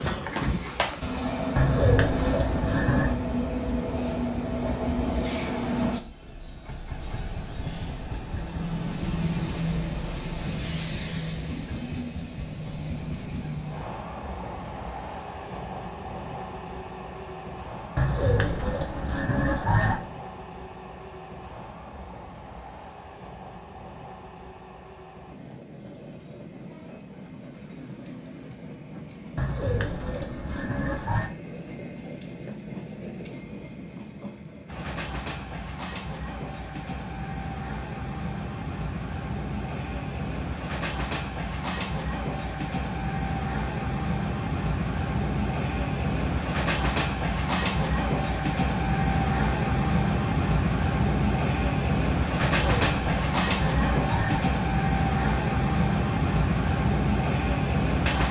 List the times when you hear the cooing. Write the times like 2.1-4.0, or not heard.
1.6-3.1, 17.9-20.0, 29.4-31.3, 52.5-54.4.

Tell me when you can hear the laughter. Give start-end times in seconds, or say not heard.
not heard.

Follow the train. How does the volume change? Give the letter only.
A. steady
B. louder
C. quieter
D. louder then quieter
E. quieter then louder
E.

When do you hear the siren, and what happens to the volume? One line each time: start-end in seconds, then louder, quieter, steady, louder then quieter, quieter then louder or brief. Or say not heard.
not heard.